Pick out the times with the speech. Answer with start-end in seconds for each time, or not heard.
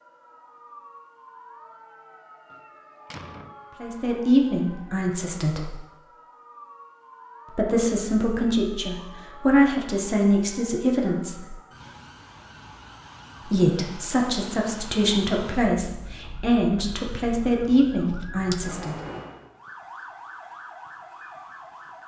3.8-5.8, 7.5-11.5, 13.4-18.9.